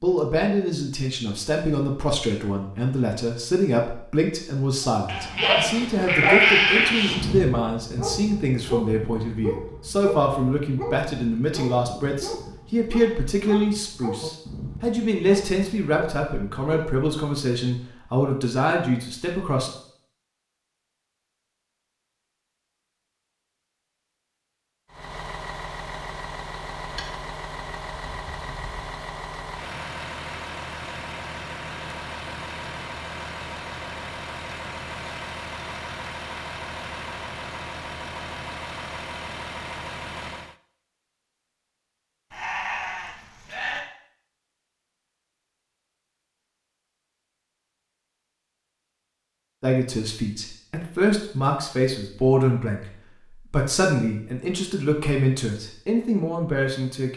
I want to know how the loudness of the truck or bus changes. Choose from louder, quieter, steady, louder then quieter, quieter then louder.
steady.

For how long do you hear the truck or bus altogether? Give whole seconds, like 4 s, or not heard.
16 s.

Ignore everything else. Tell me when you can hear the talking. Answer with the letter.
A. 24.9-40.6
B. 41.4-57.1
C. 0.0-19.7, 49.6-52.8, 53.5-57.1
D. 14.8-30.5
C.